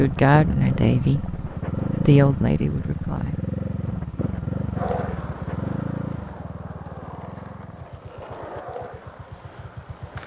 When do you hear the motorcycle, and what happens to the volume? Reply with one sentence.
The motorcycle can be heard from 0.0 to 10.2 s, getting quieter.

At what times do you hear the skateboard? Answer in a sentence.
The skateboard can be heard from 4.7 to 10.2 s.